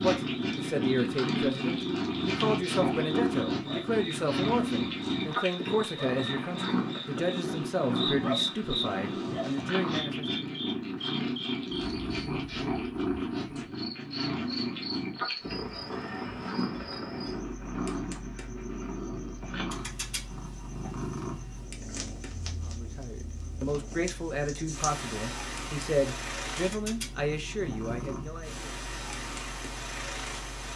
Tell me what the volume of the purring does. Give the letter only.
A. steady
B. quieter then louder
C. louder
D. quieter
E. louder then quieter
D.